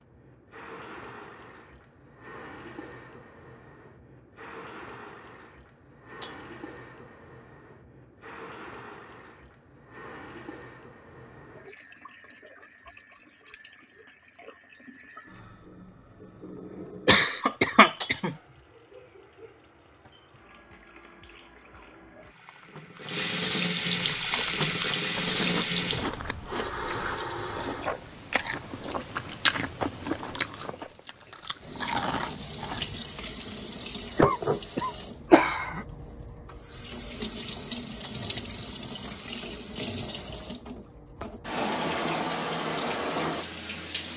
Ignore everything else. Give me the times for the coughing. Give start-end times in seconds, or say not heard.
17.1-18.4, 34.1-35.9.